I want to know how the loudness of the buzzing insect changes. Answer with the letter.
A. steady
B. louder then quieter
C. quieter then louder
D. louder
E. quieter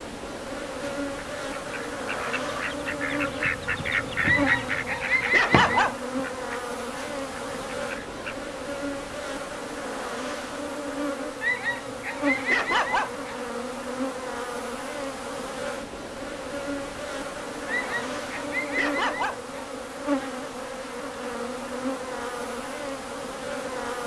A.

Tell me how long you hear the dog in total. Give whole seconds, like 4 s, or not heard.
6 s.